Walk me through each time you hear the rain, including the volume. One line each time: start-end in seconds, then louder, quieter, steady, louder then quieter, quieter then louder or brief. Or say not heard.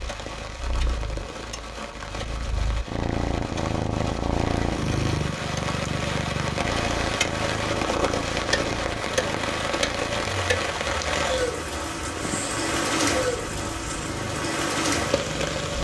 0.0-15.7 louder.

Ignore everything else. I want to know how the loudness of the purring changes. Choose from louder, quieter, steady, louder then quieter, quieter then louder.
louder then quieter.